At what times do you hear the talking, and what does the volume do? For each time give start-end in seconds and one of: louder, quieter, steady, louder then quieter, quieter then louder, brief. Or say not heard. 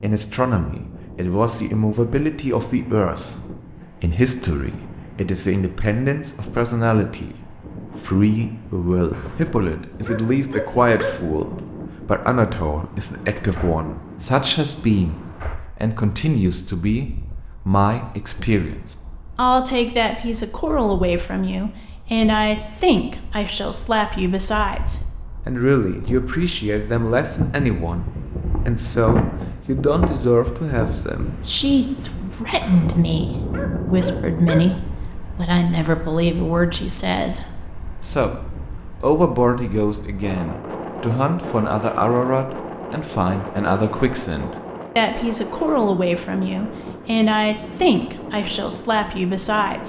0.0-49.8 steady.